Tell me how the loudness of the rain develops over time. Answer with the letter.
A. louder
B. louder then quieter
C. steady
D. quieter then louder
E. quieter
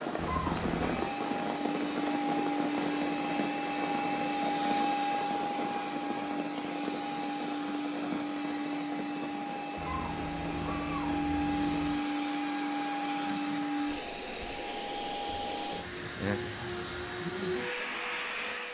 E.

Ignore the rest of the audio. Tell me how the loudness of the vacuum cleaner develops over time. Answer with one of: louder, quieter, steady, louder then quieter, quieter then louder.
steady.